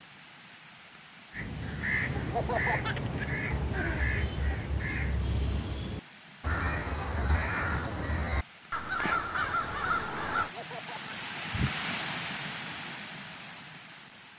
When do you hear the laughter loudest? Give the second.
3 s.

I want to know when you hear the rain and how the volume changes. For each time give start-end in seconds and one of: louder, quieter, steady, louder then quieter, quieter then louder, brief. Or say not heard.
0.0-14.3 louder.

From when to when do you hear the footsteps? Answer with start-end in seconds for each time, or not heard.
not heard.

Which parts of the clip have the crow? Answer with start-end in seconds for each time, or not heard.
1.3-10.5.